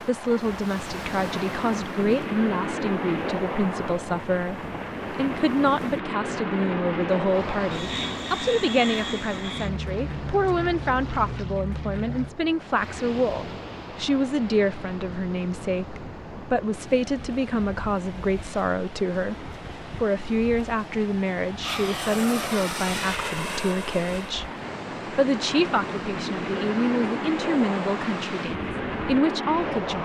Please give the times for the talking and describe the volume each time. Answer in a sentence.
You can hear the talking from 0.1 to 24.5 s, at a steady volume; and from 25.1 to 29.9 s, getting quieter then louder.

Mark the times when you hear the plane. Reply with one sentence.
The plane can be heard from 0.0 to 12.3 s and from 21.6 to 29.9 s.